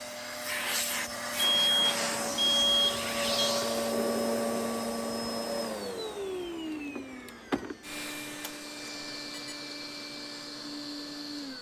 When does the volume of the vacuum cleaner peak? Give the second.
4 s.